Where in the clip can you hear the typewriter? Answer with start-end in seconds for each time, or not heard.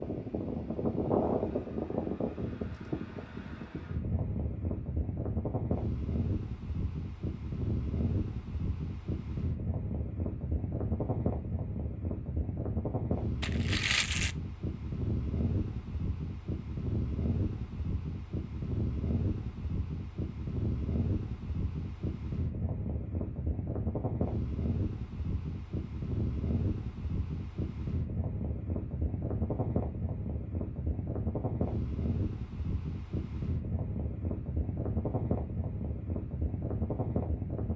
not heard.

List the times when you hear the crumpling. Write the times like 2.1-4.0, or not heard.
13.4-14.3.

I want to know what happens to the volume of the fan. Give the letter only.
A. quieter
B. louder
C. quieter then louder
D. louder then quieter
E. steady
E.